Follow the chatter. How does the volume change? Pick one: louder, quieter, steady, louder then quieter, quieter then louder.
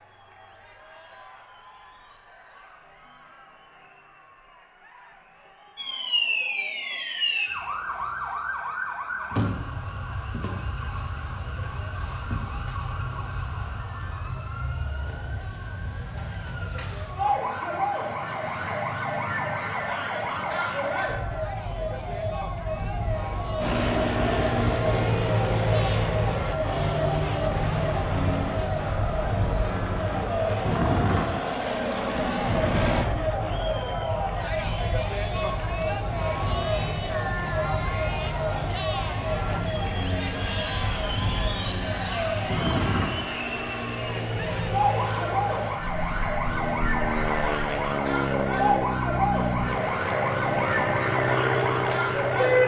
louder.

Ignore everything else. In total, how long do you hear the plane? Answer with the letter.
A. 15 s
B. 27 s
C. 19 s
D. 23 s
B.